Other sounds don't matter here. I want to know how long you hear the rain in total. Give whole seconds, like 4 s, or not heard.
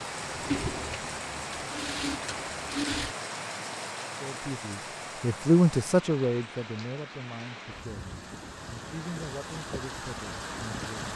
11 s.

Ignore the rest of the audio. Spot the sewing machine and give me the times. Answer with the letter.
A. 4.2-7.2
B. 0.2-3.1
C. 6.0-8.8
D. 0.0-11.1
B.